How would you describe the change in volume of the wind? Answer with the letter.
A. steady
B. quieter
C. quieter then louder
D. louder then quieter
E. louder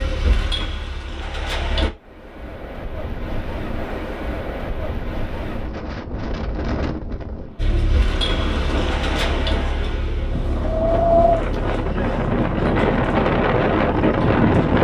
E.